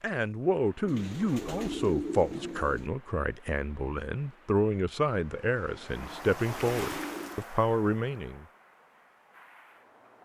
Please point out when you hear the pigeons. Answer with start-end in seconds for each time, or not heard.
0.8-2.9, 6.0-7.5.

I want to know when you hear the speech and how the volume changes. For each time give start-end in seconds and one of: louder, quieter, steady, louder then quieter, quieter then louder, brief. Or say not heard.
0.0-8.4 steady.